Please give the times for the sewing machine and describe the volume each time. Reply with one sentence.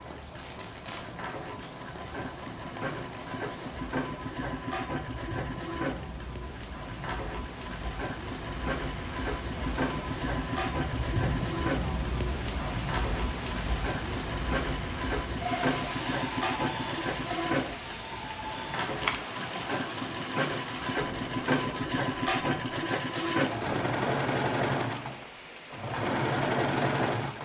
You can hear the sewing machine from 0.0 to 27.3 s, getting louder.